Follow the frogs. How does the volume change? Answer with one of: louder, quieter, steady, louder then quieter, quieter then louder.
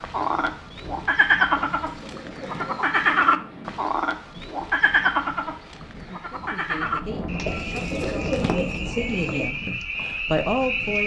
quieter.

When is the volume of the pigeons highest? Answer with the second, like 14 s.
8 s.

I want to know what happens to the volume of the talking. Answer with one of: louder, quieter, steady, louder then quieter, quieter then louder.
louder.